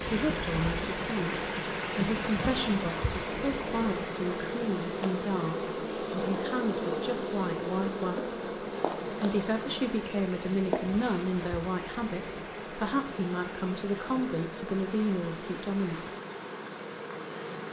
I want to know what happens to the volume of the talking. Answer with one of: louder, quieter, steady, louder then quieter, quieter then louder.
steady.